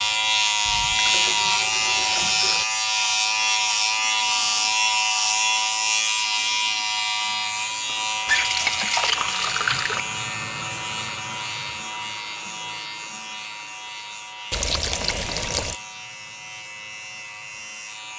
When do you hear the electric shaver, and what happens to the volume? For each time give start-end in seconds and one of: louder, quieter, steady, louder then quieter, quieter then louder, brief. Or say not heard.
0.0-18.1 quieter.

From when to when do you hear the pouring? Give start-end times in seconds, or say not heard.
0.7-2.6, 8.2-10.0, 14.5-15.8.